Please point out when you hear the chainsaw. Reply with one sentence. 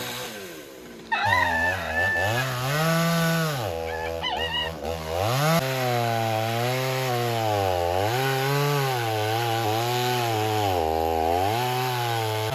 The chainsaw can be heard from 0.0 to 12.5 s.